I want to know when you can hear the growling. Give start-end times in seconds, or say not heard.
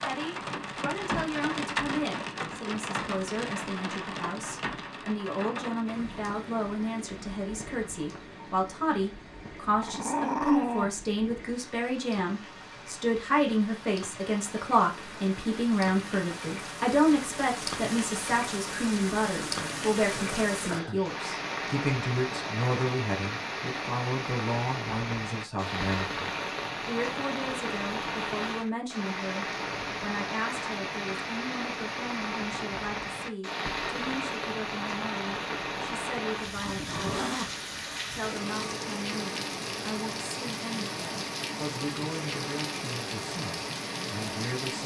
9.8-10.9, 19.3-21.1, 36.6-37.6.